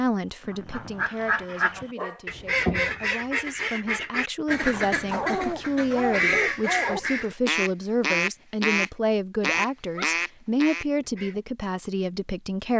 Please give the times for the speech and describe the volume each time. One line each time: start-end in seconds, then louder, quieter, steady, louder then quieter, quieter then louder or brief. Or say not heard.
0.0-12.7 louder.